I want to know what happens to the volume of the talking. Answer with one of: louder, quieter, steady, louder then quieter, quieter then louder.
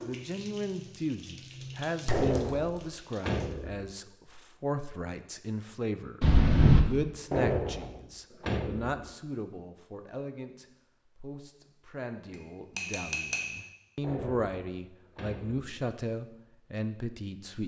quieter then louder.